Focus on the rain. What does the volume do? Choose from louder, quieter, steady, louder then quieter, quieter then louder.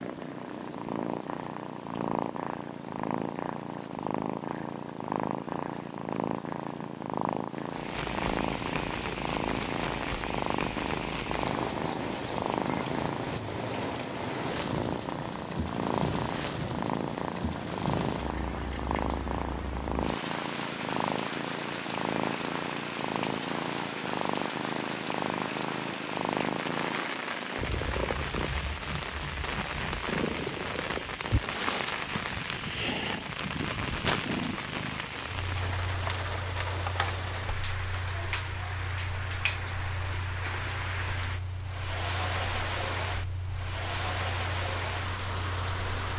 louder.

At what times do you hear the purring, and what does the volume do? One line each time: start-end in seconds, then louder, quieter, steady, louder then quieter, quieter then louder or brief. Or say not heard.
0.0-46.1 quieter.